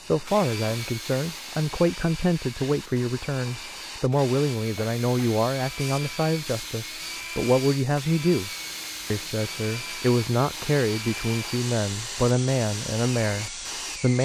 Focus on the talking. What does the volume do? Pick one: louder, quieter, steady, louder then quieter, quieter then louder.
steady.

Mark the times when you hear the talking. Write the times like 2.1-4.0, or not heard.
0.0-8.5, 9.1-14.2.